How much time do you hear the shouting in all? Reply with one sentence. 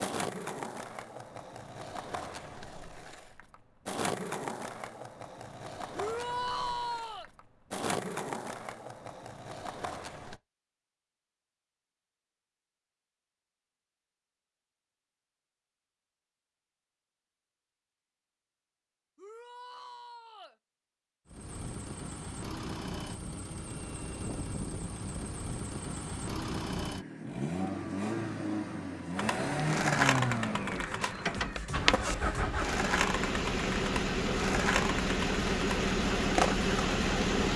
The shouting can be heard for 3 seconds in total.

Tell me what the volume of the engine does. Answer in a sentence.
The volume of the engine goes up.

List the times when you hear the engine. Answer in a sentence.
You can hear the engine from 21.2 to 37.5 s.